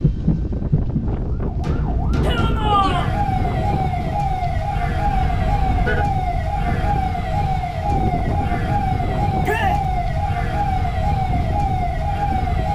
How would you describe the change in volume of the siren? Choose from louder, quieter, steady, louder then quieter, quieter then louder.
steady.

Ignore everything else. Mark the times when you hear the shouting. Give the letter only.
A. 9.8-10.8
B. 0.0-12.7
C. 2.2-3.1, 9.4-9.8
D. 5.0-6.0
C.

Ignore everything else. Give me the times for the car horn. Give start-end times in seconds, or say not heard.
5.0-6.0.